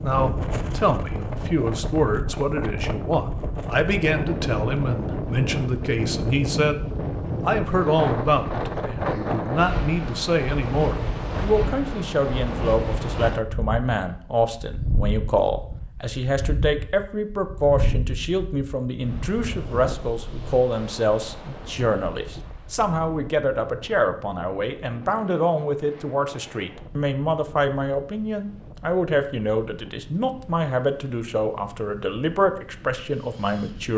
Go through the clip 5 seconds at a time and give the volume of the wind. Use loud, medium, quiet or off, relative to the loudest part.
loud, loud, loud, medium, quiet, quiet, quiet.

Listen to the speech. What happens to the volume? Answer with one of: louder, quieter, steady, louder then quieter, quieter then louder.
steady.